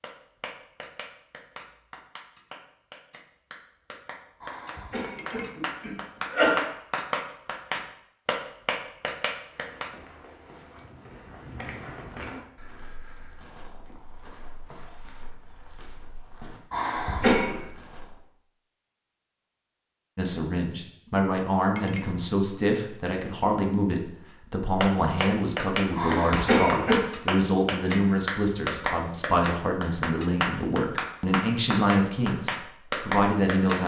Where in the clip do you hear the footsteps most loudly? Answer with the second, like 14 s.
12 s.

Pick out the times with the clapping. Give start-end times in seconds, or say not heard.
0.0-9.9, 24.8-33.8.